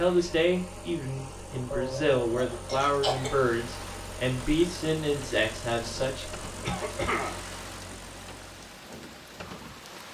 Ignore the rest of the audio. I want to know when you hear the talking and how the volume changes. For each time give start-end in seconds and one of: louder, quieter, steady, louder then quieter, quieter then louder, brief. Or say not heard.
0.0-6.3 steady.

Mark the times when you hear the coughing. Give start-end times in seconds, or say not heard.
1.7-3.4, 6.6-7.4.